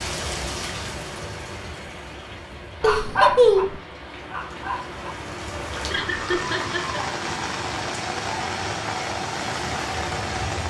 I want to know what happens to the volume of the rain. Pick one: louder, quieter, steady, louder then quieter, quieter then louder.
quieter then louder.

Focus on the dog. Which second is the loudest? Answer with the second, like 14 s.
3 s.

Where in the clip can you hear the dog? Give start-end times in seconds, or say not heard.
2.8-5.0.